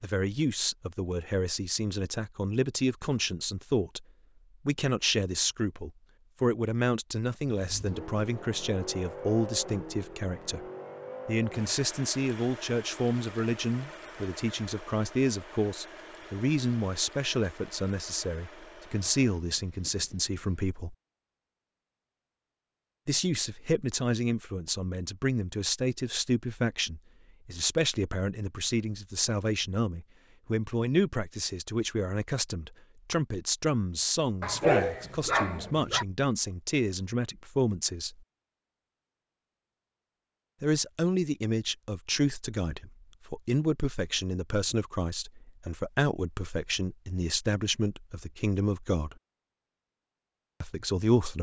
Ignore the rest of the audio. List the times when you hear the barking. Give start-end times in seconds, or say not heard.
34.4-36.0.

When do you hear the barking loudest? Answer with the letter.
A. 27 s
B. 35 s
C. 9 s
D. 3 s
B.